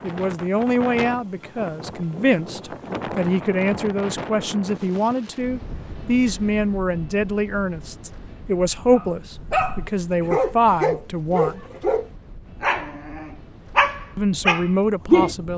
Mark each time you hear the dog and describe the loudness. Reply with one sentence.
You can hear the dog from 8.9 to 15.3 s, at a steady volume.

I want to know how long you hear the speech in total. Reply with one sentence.
You can hear the speech for 13 seconds altogether.